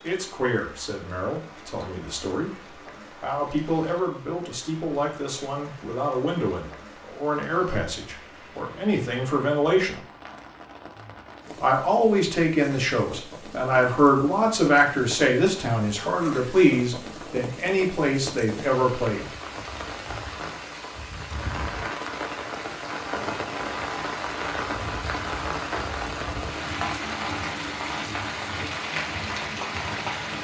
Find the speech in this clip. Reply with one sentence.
The speech can be heard from 0.0 to 10.0 s and from 11.6 to 19.3 s.